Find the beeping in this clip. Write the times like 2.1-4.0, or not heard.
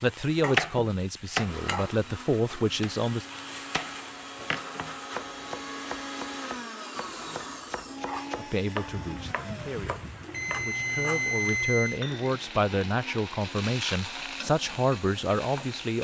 10.3-12.0.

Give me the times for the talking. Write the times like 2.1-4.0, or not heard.
0.0-3.2, 8.3-15.9.